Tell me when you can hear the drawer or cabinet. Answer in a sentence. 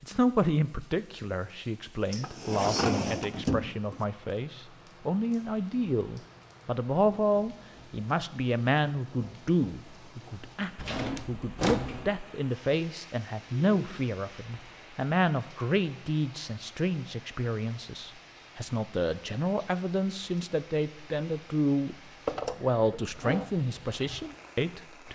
You can hear the drawer or cabinet from 2.1 to 4.0 s, from 10.8 to 12.1 s and from 22.2 to 23.4 s.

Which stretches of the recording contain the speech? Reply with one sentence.
You can hear the speech from 0.0 to 21.9 s and from 22.6 to 25.1 s.